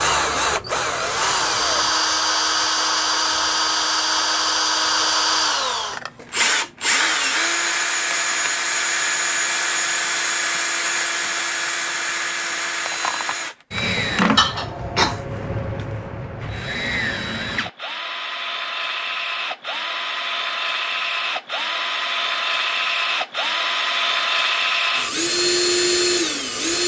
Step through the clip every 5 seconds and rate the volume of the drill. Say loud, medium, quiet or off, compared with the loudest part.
loud, loud, loud, medium, loud, loud.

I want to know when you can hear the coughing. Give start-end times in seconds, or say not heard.
14.3-15.2.